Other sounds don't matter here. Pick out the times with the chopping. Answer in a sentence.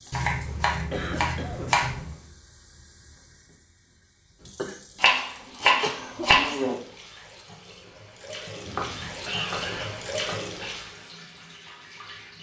You can hear the chopping from 0.1 to 2.1 s, from 5.0 to 6.8 s and from 8.7 to 10.4 s.